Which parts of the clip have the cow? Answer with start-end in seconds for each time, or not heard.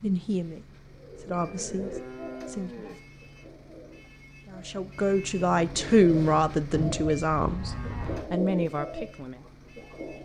1.3-3.0, 6.7-8.3.